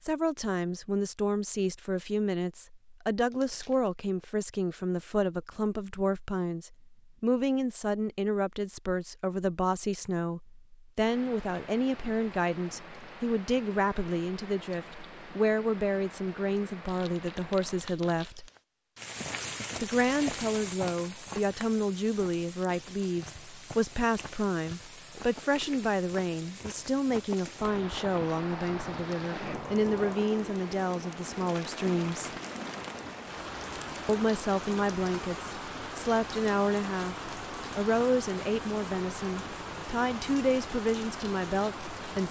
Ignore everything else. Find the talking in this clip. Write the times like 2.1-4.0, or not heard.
0.0-18.5, 19.8-32.3, 34.0-42.2.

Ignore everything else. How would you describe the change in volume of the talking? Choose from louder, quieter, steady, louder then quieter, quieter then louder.
steady.